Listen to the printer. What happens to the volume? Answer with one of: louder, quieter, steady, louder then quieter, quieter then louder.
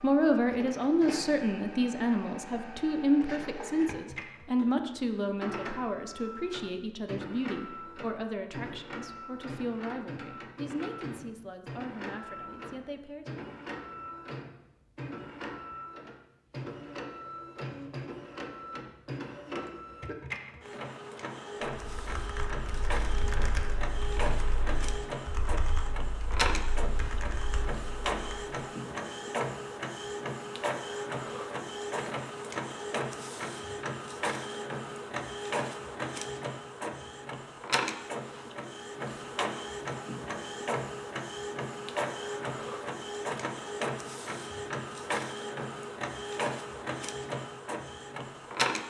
louder.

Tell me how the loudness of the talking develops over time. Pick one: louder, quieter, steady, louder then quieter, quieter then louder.
quieter.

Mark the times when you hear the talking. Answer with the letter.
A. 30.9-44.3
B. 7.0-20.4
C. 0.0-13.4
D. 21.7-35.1
C.